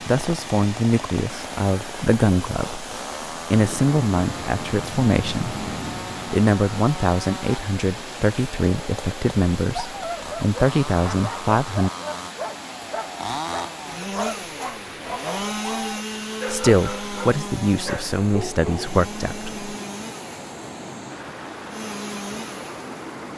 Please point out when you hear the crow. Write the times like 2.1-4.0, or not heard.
not heard.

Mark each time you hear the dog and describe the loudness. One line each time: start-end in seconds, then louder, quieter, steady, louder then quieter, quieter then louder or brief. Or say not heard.
9.7-18.9 steady.